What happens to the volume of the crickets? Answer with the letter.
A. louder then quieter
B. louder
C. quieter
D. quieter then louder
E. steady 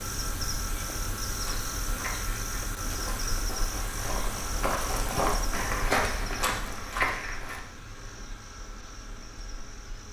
C.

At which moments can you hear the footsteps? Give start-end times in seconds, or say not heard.
1.4-7.6.